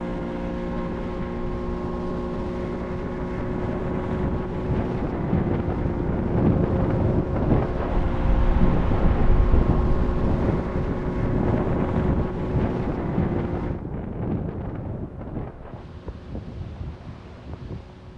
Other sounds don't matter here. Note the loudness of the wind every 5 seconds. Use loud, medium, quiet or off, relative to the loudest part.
medium, loud, loud, quiet.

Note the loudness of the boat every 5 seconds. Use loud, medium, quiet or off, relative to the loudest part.
loud, loud, loud, quiet.